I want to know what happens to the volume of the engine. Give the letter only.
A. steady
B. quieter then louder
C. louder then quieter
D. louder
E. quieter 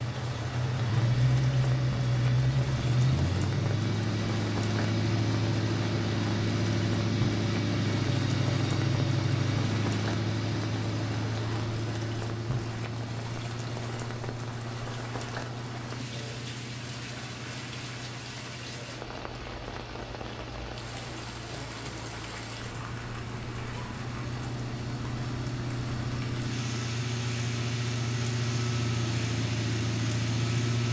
B.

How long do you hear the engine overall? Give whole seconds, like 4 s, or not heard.
31 s.